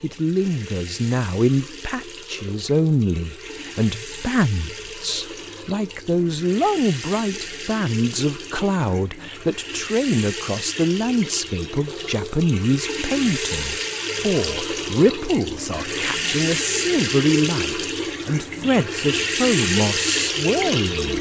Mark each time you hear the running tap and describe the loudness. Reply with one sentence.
You can hear the running tap from 0.0 to 21.1 s, getting louder.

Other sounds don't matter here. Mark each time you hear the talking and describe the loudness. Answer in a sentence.
The talking can be heard from 0.0 to 21.1 s, at a steady volume.